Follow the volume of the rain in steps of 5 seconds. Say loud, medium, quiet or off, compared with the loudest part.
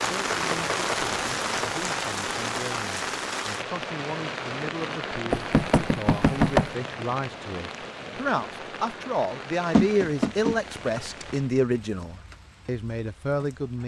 loud, medium, quiet.